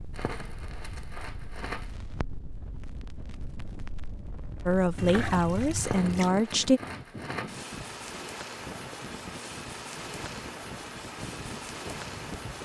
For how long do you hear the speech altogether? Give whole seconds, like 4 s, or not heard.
2 s.